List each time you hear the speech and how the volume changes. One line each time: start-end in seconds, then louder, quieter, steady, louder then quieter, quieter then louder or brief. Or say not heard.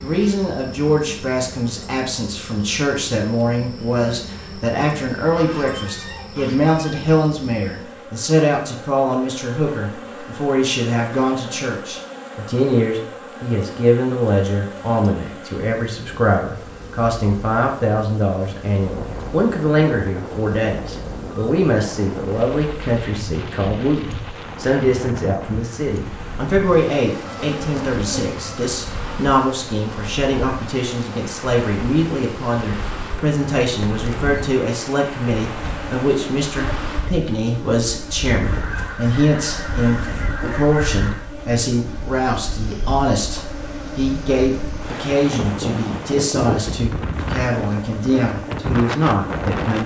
0.0-49.8 steady.